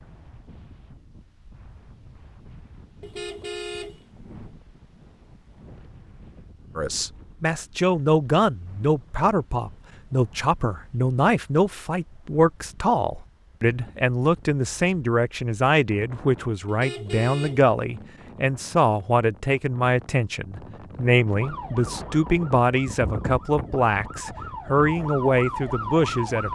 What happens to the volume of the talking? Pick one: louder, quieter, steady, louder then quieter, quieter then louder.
steady.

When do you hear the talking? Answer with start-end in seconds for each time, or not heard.
6.8-26.4.